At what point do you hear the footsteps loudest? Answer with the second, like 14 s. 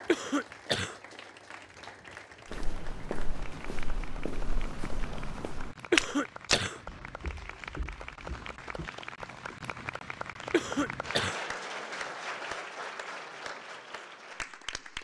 6 s.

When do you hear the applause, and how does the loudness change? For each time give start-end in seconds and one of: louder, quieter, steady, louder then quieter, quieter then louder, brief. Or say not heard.
0.0-14.9 louder.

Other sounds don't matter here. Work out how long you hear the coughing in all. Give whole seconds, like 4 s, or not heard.
3 s.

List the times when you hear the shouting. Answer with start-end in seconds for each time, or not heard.
not heard.